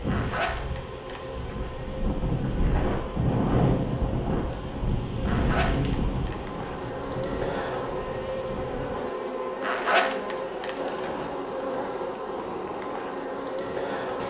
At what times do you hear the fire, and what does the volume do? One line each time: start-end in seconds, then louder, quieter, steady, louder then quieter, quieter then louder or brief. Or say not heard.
not heard.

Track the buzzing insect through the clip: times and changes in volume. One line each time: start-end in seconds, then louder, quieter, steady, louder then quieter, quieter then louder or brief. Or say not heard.
0.0-14.2 louder.